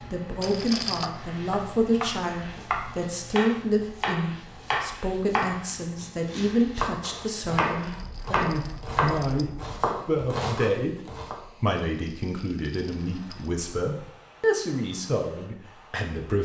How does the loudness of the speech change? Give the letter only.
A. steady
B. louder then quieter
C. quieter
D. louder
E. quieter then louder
A.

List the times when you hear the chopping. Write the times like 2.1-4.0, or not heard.
0.8-11.3.